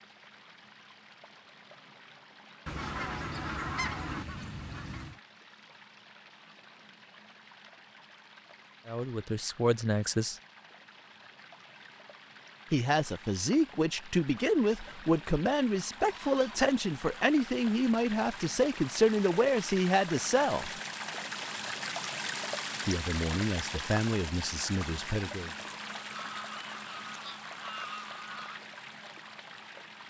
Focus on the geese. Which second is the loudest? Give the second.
4 s.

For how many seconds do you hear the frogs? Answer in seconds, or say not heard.
not heard.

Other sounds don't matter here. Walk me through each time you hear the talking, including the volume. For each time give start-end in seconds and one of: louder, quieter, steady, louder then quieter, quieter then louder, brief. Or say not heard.
8.8-10.4 brief
12.7-20.7 steady
22.9-25.5 brief.